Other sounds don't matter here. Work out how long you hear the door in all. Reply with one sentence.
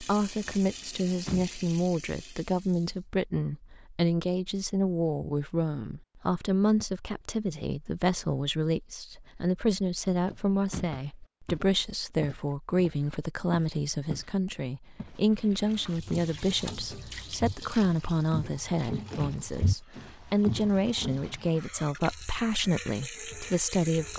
You can hear the door for 2 seconds altogether.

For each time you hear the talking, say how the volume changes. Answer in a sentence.
The talking can be heard from 0.0 to 24.1 s, at a steady volume.